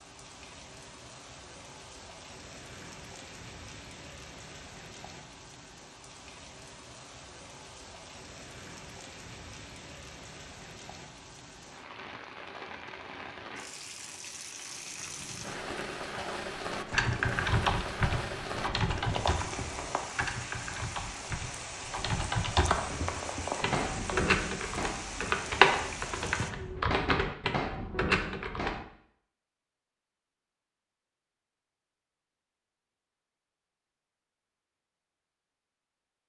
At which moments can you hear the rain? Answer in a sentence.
You can hear the rain from 0.0 to 26.5 s.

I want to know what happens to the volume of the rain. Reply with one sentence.
The volume of the rain goes up.